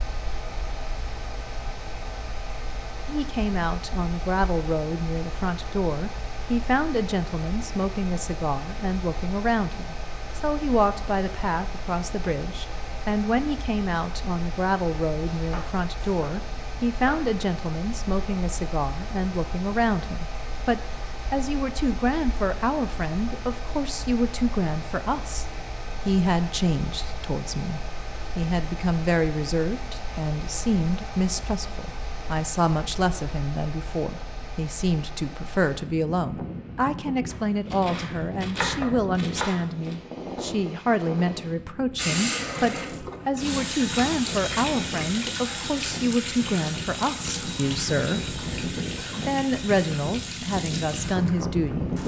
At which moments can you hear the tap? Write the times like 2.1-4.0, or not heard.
42.0-52.0.